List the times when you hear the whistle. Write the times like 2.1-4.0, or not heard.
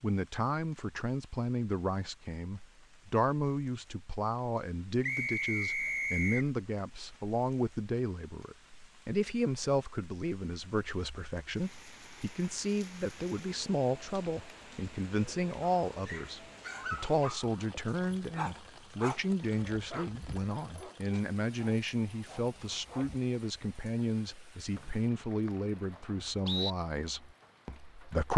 5.0-6.5, 24.8-26.8.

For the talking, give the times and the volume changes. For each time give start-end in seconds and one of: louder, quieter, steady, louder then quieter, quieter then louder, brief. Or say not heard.
0.0-28.3 steady.